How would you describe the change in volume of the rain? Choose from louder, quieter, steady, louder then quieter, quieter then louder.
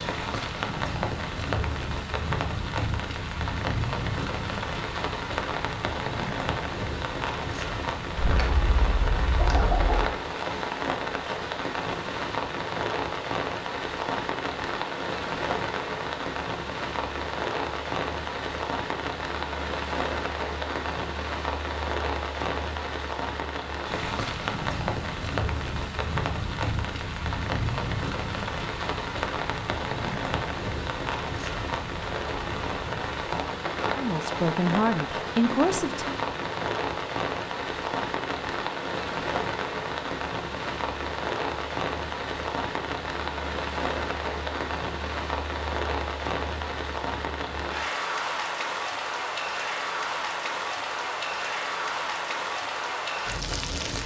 steady.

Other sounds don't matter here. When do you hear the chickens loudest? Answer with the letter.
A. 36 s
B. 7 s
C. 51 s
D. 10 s
D.